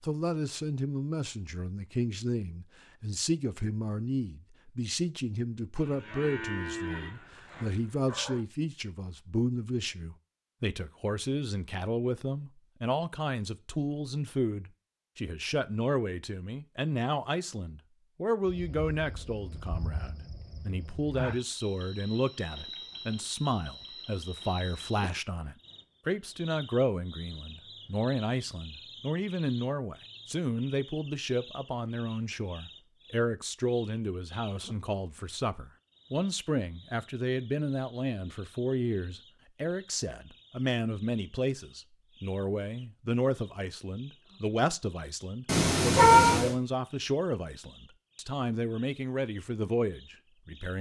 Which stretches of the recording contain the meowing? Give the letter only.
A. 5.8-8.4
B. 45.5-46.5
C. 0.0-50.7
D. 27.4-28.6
B.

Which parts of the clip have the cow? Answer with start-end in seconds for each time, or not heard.
5.8-8.4.